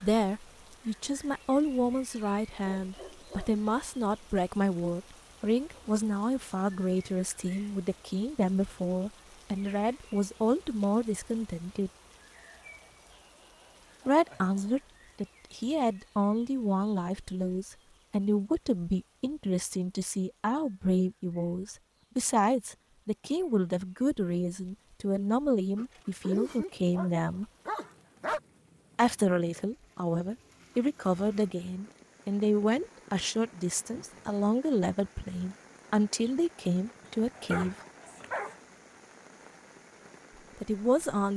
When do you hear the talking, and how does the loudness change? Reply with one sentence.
The talking can be heard from 0.0 to 11.9 s, at a steady volume; from 14.1 to 27.4 s, at a steady volume; from 28.9 to 37.9 s, at a steady volume; and briefly from 40.6 to 41.3 s.